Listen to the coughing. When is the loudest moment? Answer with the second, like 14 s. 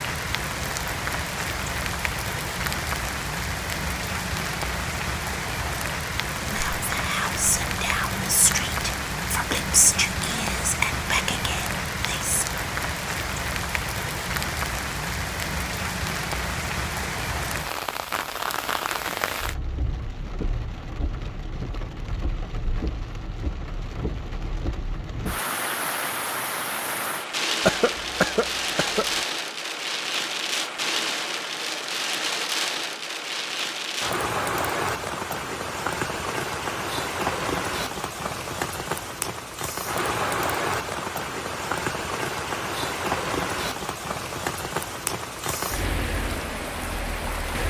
28 s.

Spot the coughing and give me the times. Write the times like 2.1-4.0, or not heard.
27.6-29.2.